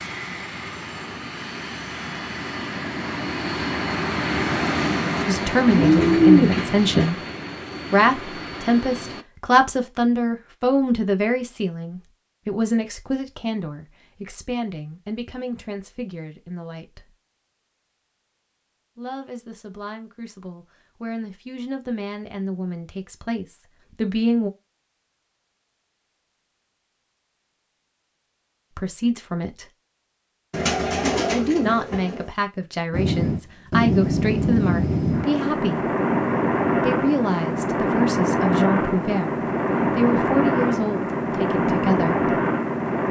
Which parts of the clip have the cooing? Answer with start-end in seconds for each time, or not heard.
5.7-7.1, 30.5-32.2.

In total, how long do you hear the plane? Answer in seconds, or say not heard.
19 s.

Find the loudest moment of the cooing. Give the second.
6 s.